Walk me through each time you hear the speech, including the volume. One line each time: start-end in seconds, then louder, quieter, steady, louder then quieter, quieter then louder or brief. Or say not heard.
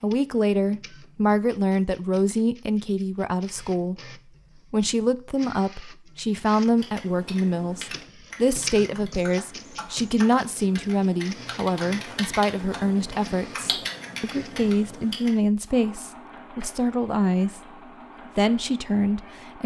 0.0-17.6 steady
18.4-19.6 brief.